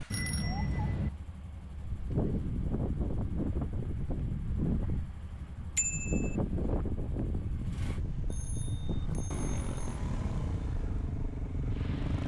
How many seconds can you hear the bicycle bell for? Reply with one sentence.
You can hear the bicycle bell for 3 seconds altogether.